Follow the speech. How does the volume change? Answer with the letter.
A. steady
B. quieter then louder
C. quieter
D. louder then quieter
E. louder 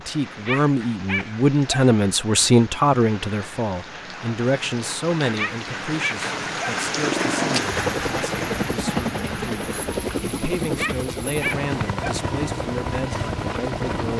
C.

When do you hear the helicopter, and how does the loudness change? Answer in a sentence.
You can hear the helicopter from 6.8 to 14.1 s, at a steady volume.